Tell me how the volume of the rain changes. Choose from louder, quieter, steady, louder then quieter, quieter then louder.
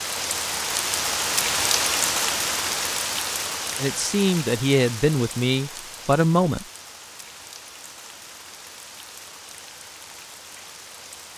quieter.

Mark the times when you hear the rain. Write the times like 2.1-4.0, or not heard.
0.0-11.3.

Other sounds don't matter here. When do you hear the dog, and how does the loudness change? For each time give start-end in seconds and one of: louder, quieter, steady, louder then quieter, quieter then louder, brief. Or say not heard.
not heard.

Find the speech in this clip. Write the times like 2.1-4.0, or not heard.
3.8-6.7.